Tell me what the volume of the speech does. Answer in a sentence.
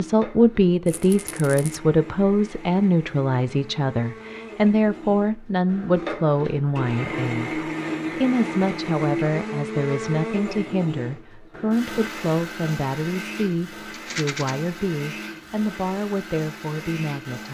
The volume of the speech goes down.